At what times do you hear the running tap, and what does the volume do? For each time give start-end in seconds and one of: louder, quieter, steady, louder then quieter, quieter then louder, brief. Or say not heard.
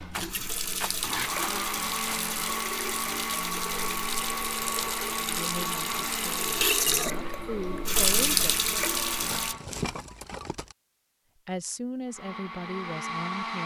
0.0-9.6 louder.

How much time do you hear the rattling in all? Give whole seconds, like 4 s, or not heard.
4 s.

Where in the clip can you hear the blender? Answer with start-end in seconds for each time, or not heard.
0.0-9.7, 12.1-13.6.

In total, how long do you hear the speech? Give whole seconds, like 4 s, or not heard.
5 s.